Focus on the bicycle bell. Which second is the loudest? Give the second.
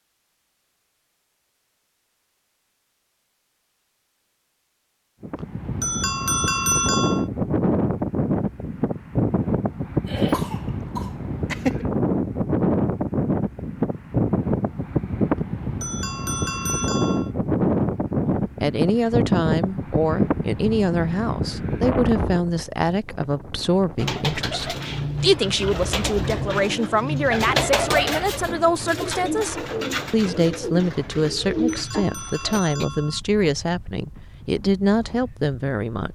7 s.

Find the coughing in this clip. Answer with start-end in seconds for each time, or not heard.
10.1-11.8.